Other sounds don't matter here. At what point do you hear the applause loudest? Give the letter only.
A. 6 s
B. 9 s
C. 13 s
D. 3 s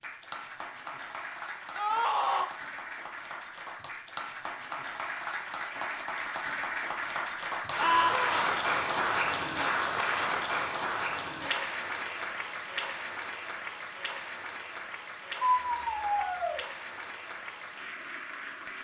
B.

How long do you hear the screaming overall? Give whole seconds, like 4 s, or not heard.
3 s.